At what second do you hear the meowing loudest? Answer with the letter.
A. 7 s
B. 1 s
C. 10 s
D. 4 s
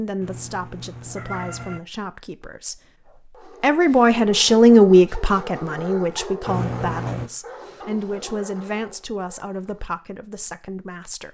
A.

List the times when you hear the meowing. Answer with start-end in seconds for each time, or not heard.
0.2-1.8, 6.5-7.3.